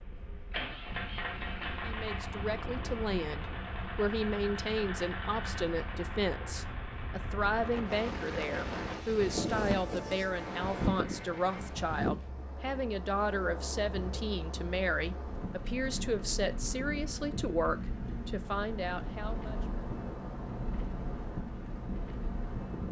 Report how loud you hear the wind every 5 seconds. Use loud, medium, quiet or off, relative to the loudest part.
medium, loud, loud, medium, medium.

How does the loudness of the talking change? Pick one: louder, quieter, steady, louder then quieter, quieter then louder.
steady.